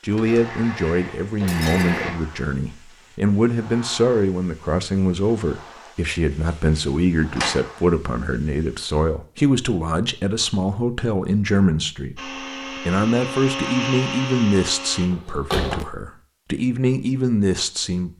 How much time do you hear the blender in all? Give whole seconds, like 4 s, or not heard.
5 s.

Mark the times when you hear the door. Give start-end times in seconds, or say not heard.
0.1-0.6, 6.5-7.6, 15.1-15.8.